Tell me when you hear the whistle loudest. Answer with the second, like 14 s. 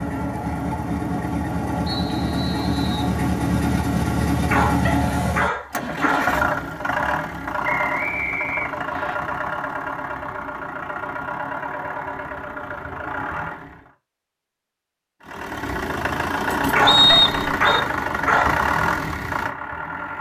17 s.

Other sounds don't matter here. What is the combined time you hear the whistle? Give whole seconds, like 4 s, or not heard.
4 s.